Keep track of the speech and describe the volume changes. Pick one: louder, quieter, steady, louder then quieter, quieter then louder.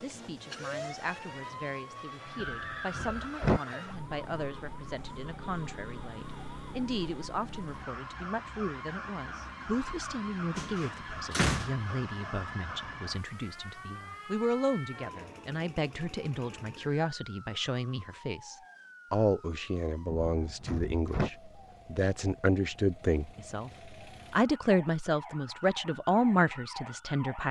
louder.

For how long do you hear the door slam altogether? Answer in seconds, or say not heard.
4 s.